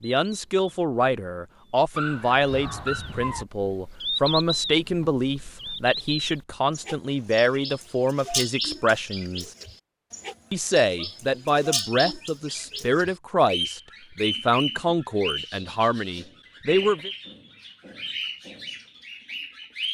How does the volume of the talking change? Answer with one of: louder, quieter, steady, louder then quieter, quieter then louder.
steady.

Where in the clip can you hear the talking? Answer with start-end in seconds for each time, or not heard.
0.0-9.5, 10.5-17.1.